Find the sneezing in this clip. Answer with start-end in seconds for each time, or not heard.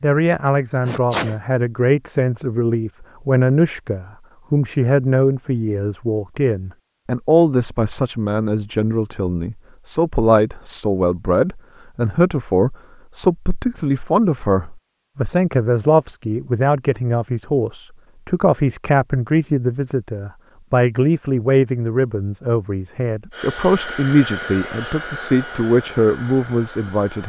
0.8-1.4.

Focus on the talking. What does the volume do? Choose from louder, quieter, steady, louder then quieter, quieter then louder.
steady.